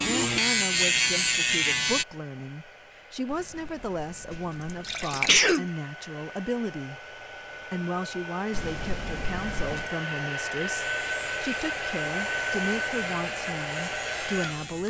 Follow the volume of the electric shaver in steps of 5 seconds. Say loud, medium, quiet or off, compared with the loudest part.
loud, off, quiet.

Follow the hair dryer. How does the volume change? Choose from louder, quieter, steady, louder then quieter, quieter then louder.
louder.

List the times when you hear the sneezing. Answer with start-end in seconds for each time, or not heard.
5.0-5.7.